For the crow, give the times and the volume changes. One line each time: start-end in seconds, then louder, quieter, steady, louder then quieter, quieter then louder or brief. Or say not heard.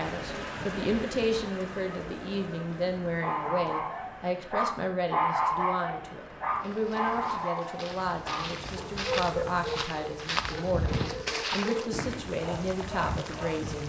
not heard.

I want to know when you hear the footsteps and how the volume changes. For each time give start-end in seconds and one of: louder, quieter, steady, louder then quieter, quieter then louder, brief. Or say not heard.
6.6-12.3 louder.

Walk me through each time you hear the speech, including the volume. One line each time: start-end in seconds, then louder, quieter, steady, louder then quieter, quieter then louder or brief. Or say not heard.
0.0-13.8 steady.